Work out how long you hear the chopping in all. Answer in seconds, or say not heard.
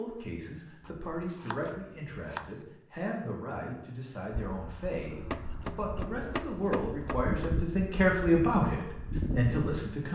4 s.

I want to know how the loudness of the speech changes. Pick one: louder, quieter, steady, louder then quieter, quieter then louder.
louder.